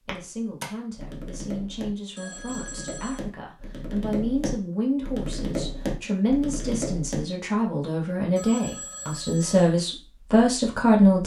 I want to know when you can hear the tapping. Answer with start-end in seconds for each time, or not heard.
0.1-7.2.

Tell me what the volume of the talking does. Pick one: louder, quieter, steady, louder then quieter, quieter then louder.
louder.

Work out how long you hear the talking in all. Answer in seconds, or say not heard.
11 s.